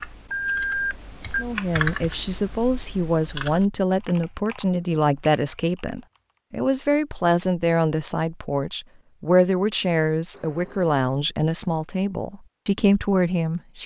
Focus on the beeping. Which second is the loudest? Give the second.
1 s.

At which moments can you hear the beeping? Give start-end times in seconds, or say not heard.
0.3-1.4, 10.3-10.9.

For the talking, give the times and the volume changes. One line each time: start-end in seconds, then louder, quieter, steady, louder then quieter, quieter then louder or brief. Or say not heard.
1.4-13.8 steady.